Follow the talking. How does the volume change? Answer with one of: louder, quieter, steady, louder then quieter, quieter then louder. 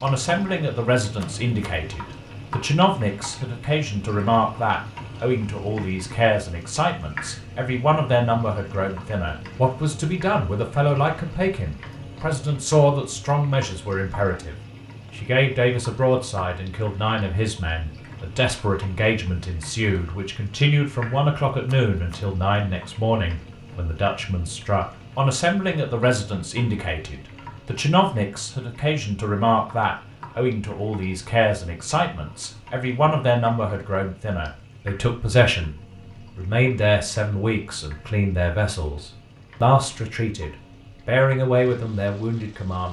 steady.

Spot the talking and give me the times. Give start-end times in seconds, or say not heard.
0.0-42.8.